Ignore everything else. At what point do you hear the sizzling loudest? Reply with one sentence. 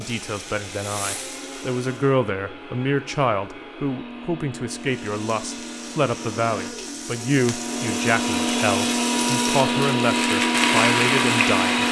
The volume of the sizzling peaks at 11 seconds.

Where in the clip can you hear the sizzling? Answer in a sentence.
You can hear the sizzling from 0.0 to 2.1 s and from 4.8 to 11.8 s.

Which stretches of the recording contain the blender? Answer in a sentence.
You can hear the blender from 0.0 to 11.8 s.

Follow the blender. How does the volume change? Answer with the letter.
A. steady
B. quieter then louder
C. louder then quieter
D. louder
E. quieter
D.